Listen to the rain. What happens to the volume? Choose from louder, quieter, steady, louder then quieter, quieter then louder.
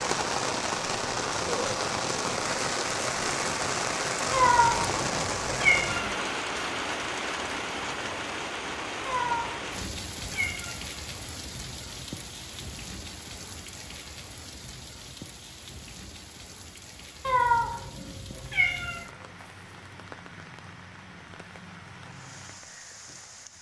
quieter.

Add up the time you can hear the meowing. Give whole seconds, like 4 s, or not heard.
5 s.